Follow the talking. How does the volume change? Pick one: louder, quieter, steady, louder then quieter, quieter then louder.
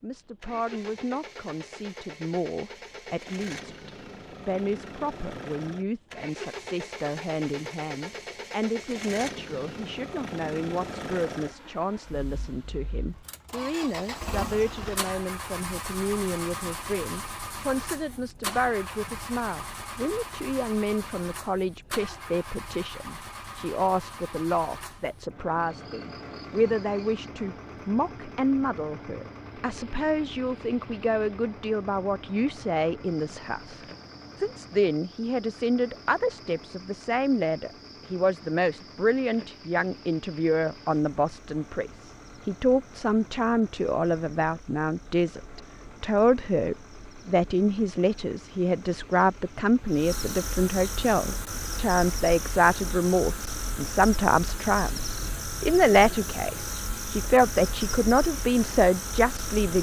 louder.